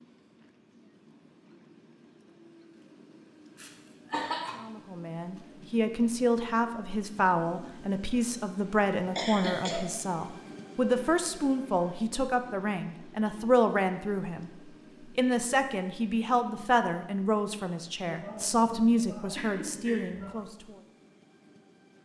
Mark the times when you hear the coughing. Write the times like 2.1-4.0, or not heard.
3.5-4.5, 9.2-9.8, 18.0-20.4.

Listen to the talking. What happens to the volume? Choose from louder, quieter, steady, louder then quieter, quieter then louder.
steady.